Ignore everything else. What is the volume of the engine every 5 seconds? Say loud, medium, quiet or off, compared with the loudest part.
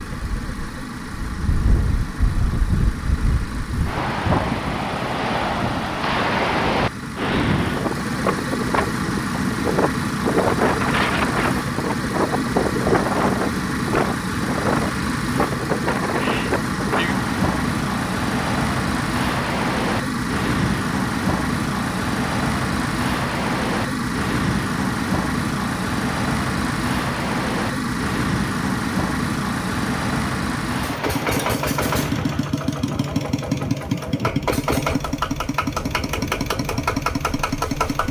medium, loud, loud, loud, loud, loud, loud, loud.